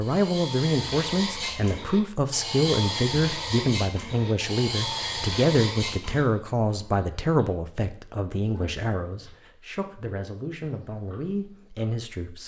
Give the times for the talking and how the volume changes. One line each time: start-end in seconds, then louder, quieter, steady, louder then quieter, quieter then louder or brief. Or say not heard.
0.0-12.4 quieter.